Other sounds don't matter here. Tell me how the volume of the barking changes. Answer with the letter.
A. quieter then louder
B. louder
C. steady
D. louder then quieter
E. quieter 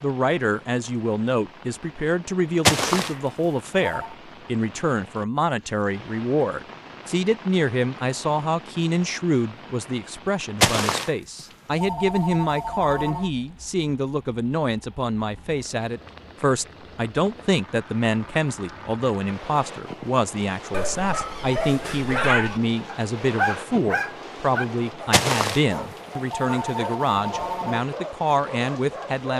E.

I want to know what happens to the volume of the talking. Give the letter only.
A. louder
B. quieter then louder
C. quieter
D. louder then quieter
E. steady
E.